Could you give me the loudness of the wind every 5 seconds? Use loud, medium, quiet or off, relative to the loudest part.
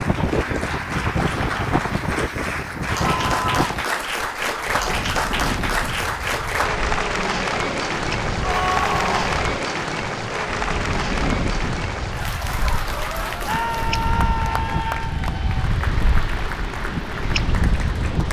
loud, medium, loud, loud.